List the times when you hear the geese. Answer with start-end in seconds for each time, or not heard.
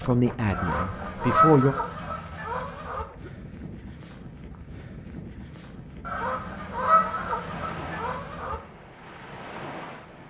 0.5-3.0, 6.0-8.6.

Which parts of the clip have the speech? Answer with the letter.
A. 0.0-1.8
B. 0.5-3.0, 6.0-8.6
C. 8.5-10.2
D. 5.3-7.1
A.